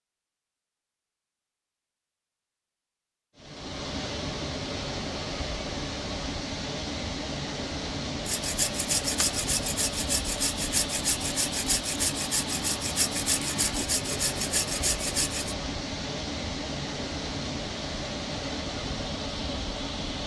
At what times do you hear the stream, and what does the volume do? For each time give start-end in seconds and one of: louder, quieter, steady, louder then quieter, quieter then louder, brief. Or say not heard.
3.4-20.2 steady.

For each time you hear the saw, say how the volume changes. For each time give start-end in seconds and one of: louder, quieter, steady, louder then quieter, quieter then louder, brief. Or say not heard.
8.2-15.6 steady.